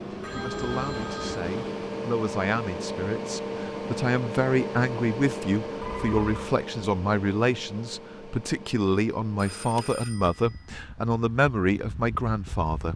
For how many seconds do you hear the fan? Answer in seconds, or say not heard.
13 s.